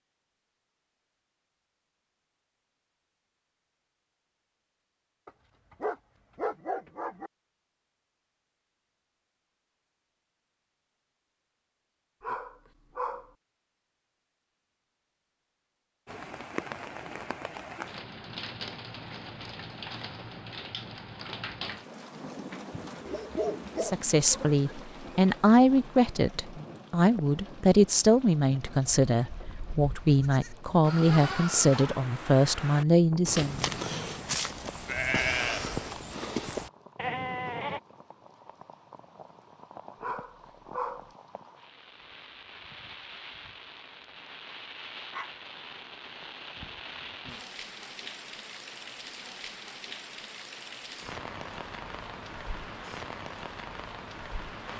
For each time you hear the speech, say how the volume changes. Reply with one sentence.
You can hear the speech from 23.8 to 33.7 s, at a steady volume.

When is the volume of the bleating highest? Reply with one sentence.
The volume of the bleating peaks at 35 seconds.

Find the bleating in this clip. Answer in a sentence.
The bleating can be heard from 28.6 to 37.8 s.